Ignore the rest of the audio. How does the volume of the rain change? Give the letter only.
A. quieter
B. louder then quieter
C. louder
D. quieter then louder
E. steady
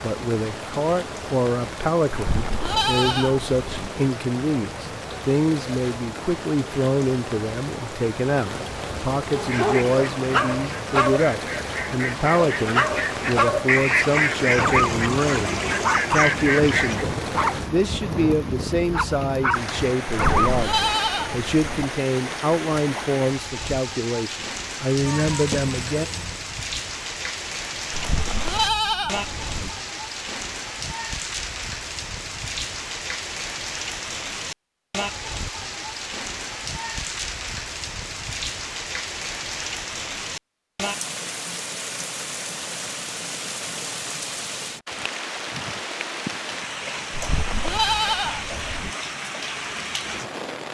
E.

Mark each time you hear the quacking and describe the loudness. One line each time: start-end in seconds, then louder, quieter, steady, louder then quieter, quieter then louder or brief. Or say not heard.
9.4-17.1 louder.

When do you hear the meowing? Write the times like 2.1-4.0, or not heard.
25.1-26.4.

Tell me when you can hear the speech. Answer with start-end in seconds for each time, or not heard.
0.0-26.1.